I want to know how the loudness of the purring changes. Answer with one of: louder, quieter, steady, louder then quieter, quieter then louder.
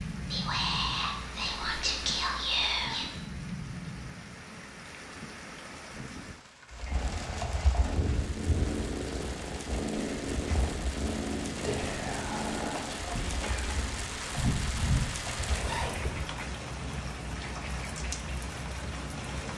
quieter.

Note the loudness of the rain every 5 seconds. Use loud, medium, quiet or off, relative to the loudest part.
loud, medium, loud, loud.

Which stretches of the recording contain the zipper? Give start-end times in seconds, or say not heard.
14.3-16.3.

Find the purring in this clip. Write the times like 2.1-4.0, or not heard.
6.7-16.0.